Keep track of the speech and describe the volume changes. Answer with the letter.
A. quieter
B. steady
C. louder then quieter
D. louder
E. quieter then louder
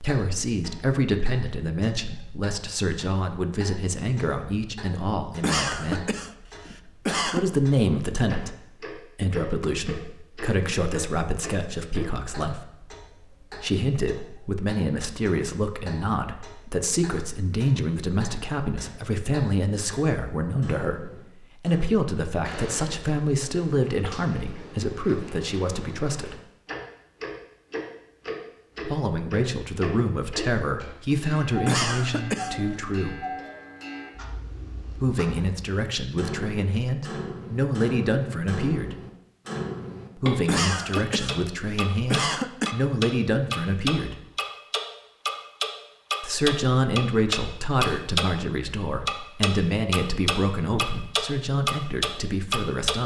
B.